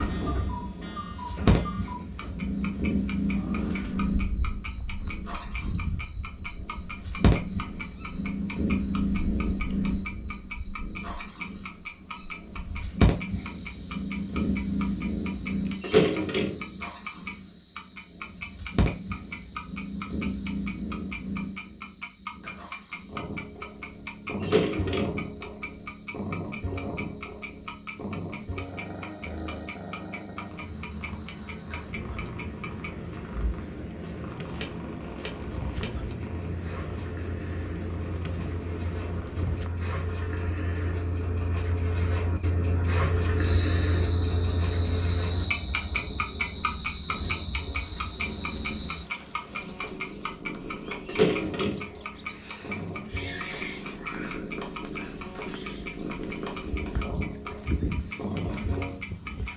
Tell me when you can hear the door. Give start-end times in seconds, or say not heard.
15.8-16.6, 24.4-25.2, 51.0-51.9.